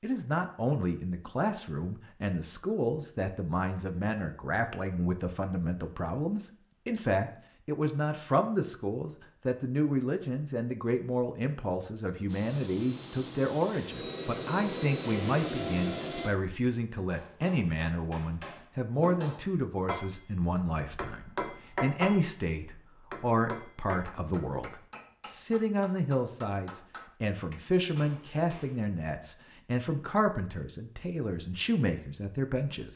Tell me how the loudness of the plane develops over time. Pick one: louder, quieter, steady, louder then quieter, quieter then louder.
louder.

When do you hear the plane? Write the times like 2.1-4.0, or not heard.
12.2-16.3.